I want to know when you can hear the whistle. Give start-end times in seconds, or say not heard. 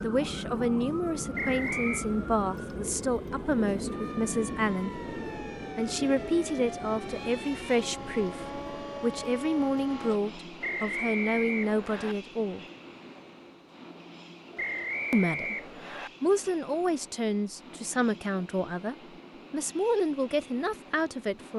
1.4-2.0, 10.6-12.2, 14.6-16.1.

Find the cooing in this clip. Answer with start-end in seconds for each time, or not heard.
not heard.